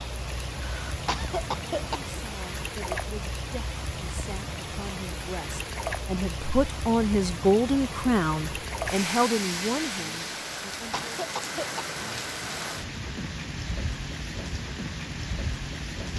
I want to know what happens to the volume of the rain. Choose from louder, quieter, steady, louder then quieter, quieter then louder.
steady.